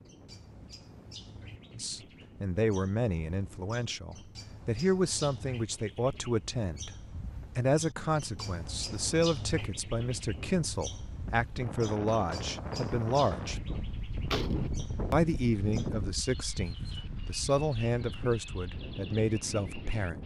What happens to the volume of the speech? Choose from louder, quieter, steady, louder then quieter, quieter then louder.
steady.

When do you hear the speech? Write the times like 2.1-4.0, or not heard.
1.7-7.0, 7.5-13.6, 15.1-20.2.